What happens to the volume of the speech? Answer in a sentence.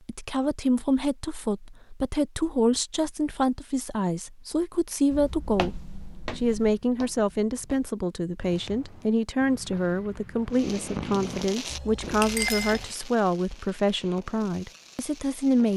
The loudness of the speech stays about the same.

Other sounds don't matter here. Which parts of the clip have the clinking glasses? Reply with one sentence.
The clinking glasses can be heard from 11.7 to 12.9 s.